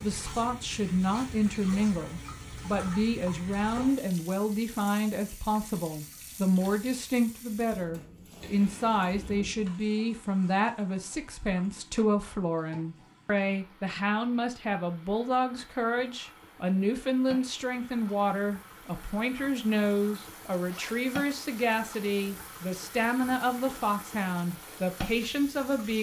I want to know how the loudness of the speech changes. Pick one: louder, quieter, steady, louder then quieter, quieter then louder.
steady.